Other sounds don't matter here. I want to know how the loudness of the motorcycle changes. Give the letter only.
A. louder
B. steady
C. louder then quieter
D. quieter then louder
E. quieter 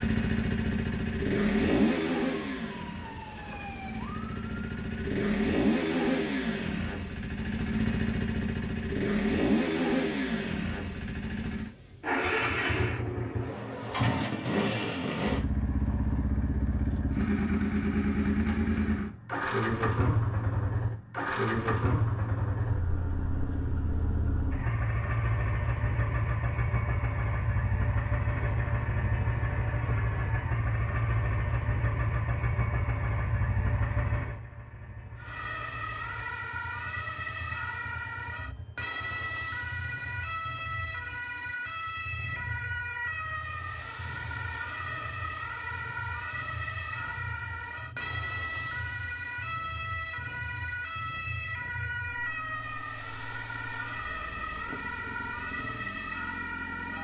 E.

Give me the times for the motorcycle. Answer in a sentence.
You can hear the motorcycle from 0.0 to 57.0 s.